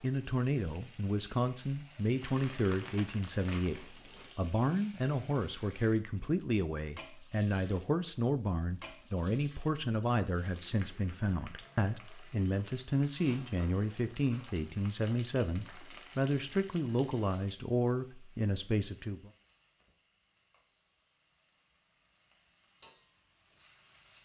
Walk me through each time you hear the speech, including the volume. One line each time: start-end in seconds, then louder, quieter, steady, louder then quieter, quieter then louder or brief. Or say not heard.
0.0-19.3 steady.